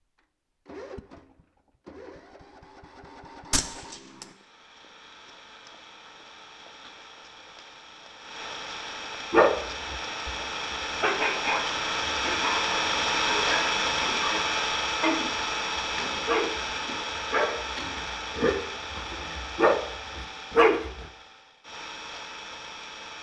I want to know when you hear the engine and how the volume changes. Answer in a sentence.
You can hear the engine from 0.0 to 23.1 s, getting louder then quieter.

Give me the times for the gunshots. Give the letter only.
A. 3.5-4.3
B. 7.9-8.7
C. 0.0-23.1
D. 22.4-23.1
A.